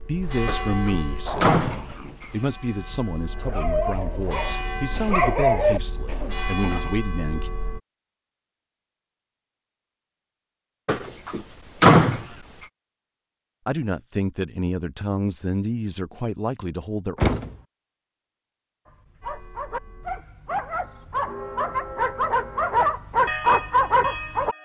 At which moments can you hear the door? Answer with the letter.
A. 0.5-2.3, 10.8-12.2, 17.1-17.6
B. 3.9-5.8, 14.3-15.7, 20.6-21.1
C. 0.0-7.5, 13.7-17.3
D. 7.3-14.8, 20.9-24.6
A.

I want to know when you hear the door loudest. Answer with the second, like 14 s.
12 s.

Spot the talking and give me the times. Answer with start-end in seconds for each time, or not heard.
0.0-7.5, 13.7-17.3.